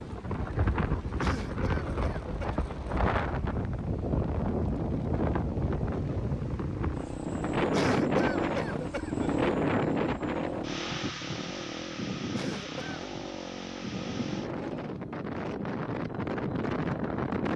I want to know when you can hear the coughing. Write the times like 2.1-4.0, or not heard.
1.2-2.6, 7.7-9.3, 12.3-12.8.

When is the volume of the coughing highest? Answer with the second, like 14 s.
8 s.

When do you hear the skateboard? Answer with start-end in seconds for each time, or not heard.
not heard.